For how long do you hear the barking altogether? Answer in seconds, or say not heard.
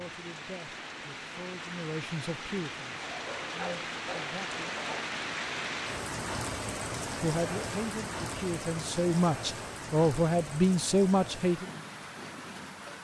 2 s.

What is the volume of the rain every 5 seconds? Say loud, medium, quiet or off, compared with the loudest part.
loud, loud, medium.